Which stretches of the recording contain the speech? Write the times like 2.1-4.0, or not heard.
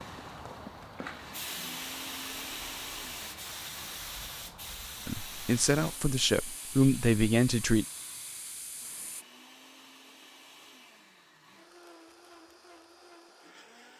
5.0-7.8.